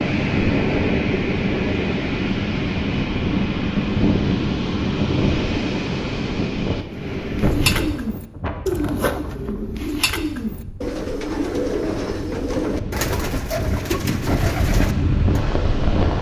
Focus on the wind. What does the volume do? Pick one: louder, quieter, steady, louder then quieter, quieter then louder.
quieter then louder.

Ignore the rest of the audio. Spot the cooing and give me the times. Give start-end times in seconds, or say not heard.
7.0-15.4.